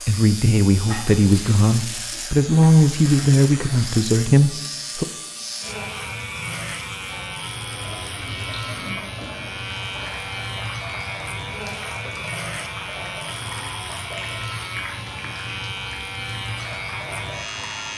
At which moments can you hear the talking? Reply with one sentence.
The talking can be heard from 0.0 to 5.0 s.